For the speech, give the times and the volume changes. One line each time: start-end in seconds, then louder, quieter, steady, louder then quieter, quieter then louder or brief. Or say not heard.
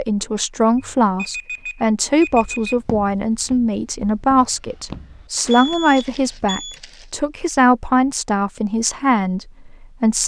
0.0-10.2 steady.